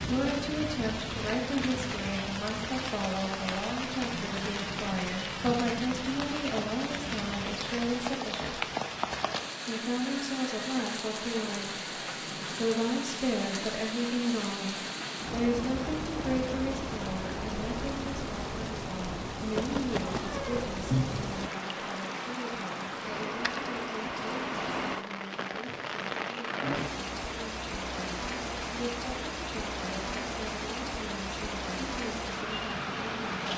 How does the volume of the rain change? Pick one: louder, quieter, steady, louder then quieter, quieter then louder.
steady.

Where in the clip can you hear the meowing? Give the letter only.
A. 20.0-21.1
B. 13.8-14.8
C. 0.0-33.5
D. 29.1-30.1
A.